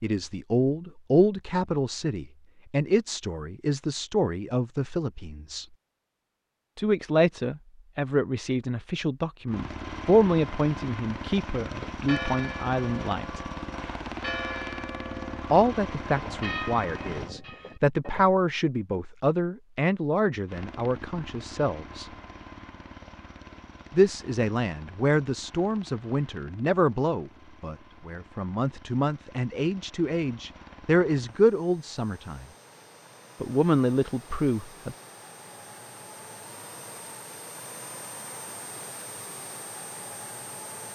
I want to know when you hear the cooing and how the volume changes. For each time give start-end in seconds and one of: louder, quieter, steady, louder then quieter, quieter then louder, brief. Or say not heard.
not heard.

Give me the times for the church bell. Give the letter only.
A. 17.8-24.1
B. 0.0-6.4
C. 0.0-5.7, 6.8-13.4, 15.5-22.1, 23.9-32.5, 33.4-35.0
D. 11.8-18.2
D.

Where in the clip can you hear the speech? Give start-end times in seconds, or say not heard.
0.0-5.7, 6.8-13.4, 15.5-22.1, 23.9-32.5, 33.4-35.0.